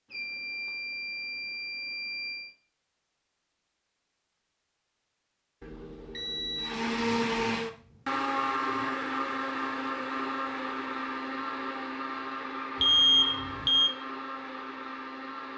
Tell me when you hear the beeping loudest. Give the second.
13 s.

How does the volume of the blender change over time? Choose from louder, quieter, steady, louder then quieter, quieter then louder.
quieter.